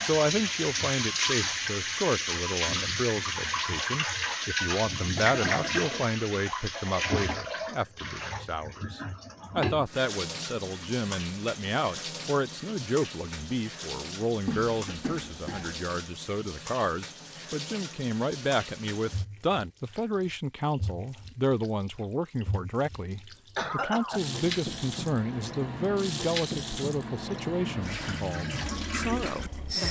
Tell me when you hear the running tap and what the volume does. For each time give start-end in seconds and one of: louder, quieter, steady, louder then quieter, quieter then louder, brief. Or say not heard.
0.0-29.8 quieter then louder.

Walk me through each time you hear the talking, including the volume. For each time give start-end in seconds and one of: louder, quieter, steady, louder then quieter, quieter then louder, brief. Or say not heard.
0.0-29.8 steady.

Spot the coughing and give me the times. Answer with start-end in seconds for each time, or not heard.
5.2-5.9, 14.4-15.8, 23.6-24.2.